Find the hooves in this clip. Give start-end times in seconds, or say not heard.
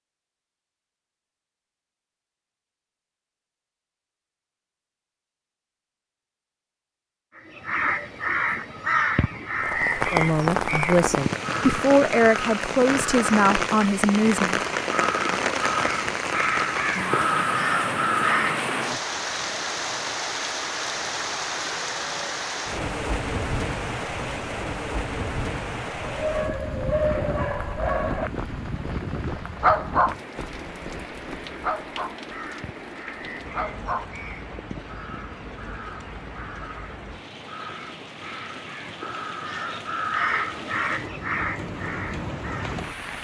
not heard.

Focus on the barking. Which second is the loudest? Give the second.
30 s.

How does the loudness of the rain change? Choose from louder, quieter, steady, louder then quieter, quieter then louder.
quieter.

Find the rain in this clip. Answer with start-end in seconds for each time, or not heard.
9.6-43.1.